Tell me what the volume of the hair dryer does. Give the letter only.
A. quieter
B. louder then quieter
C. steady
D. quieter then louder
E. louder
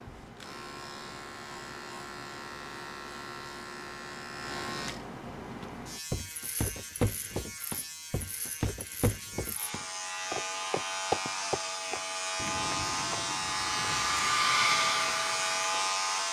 E.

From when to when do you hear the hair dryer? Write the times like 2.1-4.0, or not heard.
9.6-16.2.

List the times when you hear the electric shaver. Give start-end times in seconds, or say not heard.
0.0-16.2.